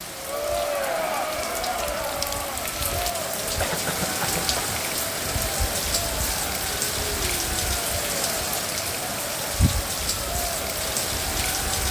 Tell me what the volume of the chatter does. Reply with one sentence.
The volume of the chatter goes down.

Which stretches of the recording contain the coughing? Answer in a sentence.
The coughing can be heard from 3.6 to 4.8 s.